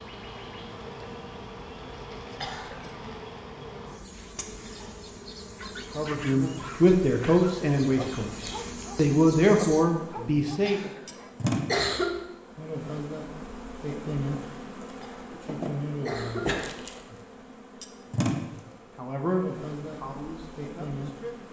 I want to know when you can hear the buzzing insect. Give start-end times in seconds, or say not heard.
0.0-21.4.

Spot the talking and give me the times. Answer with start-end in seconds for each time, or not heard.
6.0-10.9, 18.9-21.4.